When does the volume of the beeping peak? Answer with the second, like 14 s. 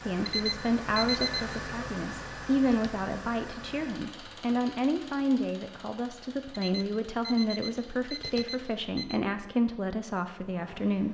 1 s.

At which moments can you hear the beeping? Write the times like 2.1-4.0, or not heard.
0.2-1.4, 6.5-9.2.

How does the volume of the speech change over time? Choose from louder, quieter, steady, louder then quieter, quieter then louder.
steady.